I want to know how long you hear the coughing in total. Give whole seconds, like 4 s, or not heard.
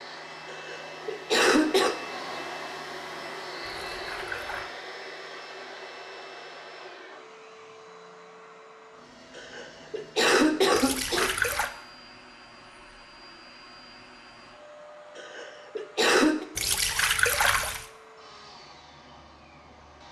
5 s.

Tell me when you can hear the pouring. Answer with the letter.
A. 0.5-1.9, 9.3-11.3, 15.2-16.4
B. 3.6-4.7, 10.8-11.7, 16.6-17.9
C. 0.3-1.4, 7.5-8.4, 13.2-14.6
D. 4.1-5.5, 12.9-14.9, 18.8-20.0
B.